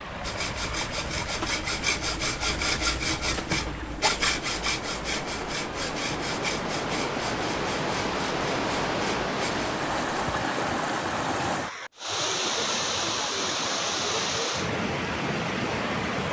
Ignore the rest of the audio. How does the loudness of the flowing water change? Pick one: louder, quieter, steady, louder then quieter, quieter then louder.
louder.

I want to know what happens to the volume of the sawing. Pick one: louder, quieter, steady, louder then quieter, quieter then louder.
quieter.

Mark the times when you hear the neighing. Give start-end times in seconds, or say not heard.
not heard.